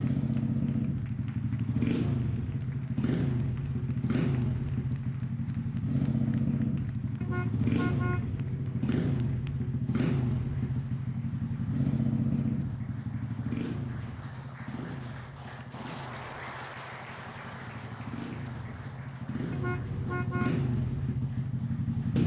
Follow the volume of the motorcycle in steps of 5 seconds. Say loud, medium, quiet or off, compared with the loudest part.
loud, loud, loud, medium, loud.